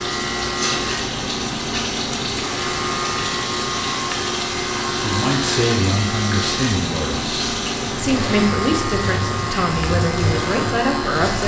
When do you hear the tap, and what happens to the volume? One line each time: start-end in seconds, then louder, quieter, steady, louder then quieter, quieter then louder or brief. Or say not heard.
0.0-11.4 steady.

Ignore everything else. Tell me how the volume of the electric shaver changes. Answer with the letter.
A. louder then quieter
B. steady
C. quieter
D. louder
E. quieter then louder
B.